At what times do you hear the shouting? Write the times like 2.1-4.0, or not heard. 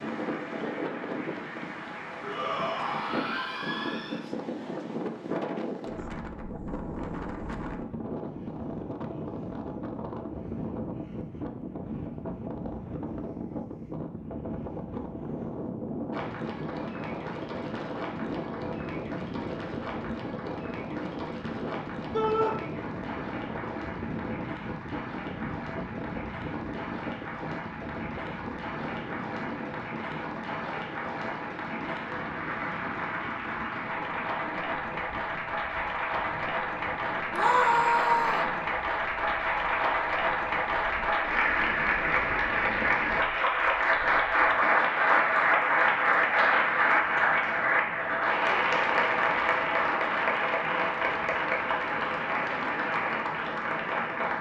2.2-4.2, 22.1-22.6, 37.3-38.5.